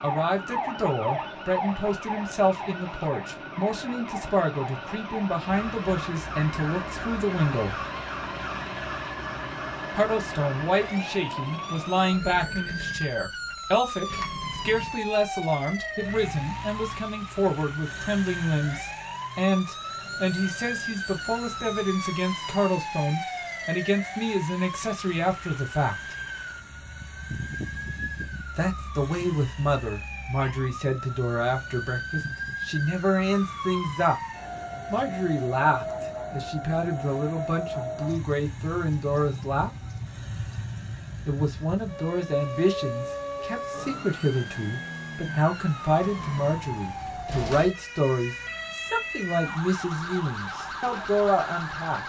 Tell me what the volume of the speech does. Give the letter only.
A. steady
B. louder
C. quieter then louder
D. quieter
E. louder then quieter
A.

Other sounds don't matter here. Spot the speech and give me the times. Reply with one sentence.
You can hear the speech from 0.0 to 7.8 s, from 9.9 to 26.1 s, from 28.6 to 34.2 s, from 34.9 to 39.8 s and from 41.2 to 52.0 s.